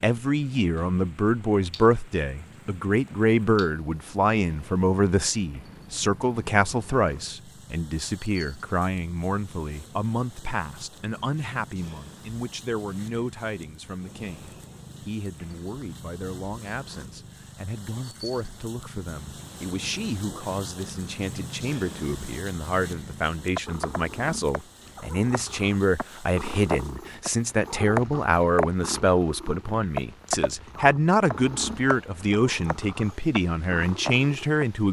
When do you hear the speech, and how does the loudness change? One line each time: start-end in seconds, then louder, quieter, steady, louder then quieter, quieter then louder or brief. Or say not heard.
0.0-34.8 quieter then louder.